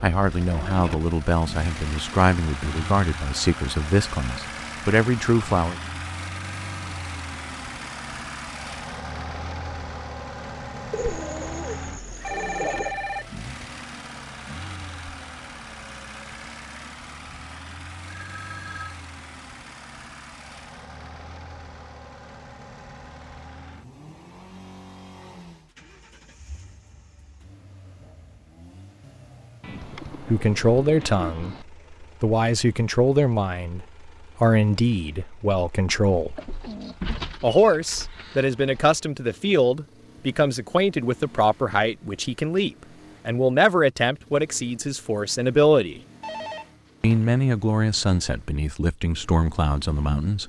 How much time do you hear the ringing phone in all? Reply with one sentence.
The ringing phone can be heard for 3 seconds in total.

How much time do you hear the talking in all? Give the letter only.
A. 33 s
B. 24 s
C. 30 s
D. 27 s
B.